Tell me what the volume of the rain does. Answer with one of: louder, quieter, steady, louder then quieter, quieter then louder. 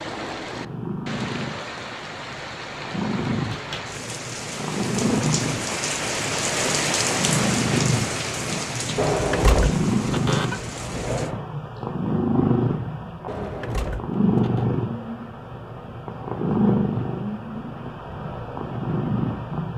louder then quieter.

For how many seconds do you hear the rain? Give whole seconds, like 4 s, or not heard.
11 s.